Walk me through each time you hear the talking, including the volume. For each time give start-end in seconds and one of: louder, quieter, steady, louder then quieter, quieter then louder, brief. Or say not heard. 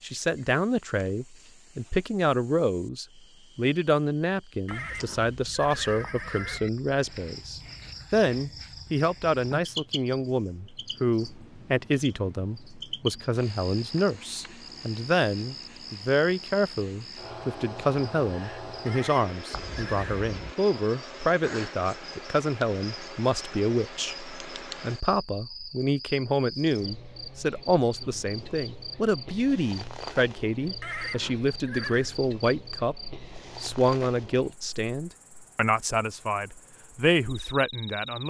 0.0-38.2 steady.